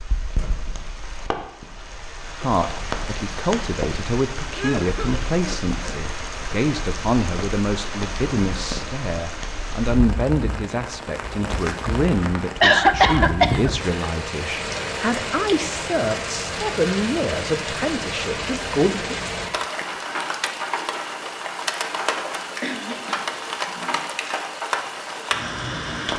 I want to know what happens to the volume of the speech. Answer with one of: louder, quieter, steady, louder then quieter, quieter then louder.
steady.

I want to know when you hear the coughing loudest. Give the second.
13 s.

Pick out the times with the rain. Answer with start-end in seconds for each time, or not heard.
0.0-26.1.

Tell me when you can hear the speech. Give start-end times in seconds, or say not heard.
2.4-19.1.